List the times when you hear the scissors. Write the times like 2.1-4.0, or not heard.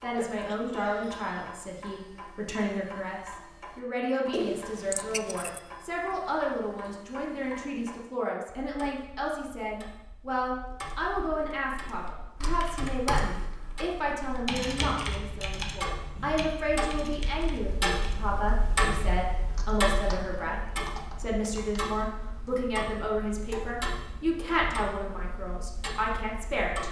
4.3-5.6.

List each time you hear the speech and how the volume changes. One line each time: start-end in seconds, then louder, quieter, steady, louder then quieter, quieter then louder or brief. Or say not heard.
0.0-26.8 steady.